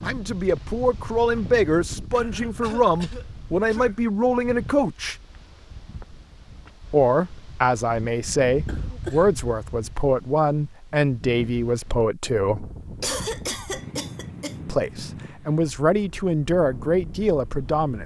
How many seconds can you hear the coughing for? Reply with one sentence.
You can hear the coughing for 4 seconds altogether.